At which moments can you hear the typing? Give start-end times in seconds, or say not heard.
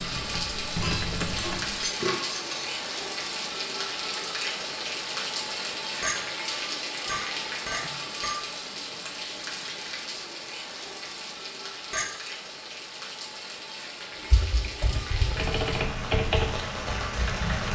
0.0-1.9, 14.2-17.7.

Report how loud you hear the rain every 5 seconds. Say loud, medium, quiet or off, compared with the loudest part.
loud, loud, medium, loud.